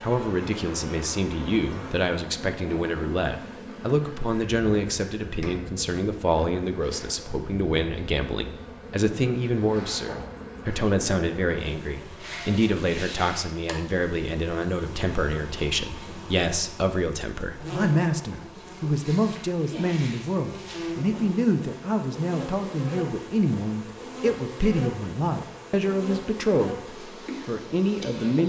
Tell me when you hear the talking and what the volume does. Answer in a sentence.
You can hear the talking from 0.0 to 28.4 s, at a steady volume.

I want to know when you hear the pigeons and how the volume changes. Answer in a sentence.
You can't hear the pigeons here.